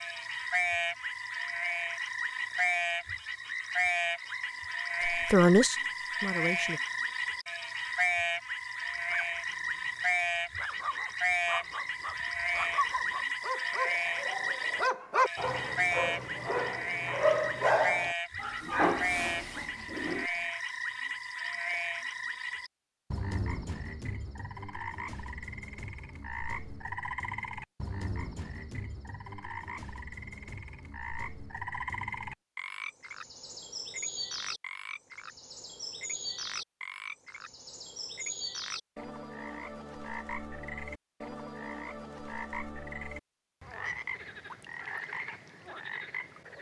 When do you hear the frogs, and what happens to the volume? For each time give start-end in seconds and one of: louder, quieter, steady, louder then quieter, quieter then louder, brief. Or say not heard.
0.0-46.5 quieter.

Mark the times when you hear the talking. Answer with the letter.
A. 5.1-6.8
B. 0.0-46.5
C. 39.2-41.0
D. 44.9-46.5
A.